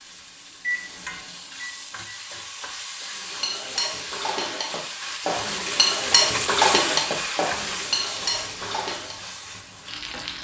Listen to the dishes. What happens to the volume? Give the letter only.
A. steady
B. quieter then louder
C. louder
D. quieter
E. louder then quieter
E.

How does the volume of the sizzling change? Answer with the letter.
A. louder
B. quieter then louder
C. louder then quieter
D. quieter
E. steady
C.